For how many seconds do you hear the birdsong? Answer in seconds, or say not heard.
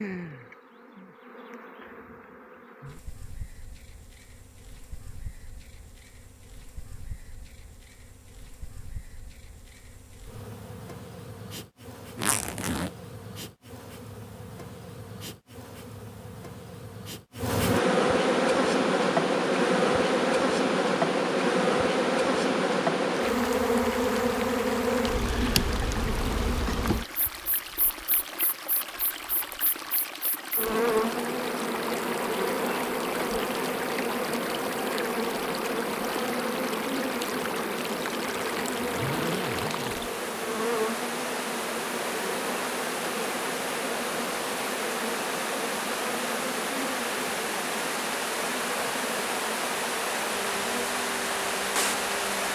not heard.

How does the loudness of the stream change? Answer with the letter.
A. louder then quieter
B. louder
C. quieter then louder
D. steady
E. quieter
B.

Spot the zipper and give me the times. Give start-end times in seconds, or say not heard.
12.2-12.9, 38.3-40.0.